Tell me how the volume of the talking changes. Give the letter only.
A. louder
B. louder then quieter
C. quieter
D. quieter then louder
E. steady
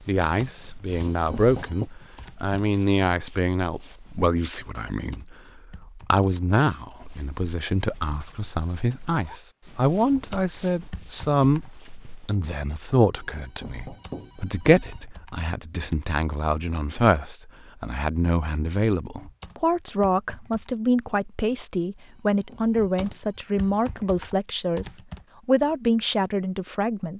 E.